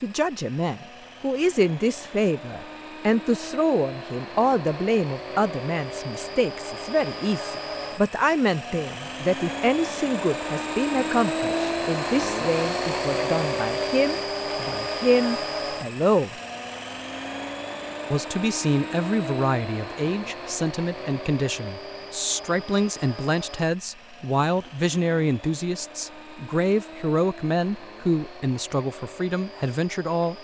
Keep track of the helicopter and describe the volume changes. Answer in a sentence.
The volume of the helicopter goes up, then down.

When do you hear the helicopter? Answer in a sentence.
The helicopter can be heard from 0.0 to 30.4 s.